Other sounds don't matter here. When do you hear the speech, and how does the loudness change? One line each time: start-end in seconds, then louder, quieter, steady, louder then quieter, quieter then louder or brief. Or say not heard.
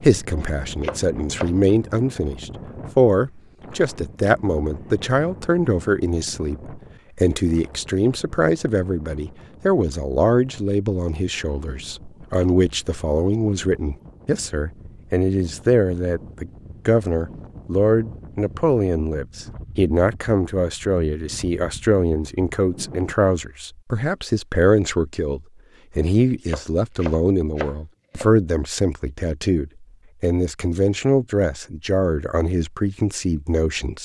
0.0-34.0 steady.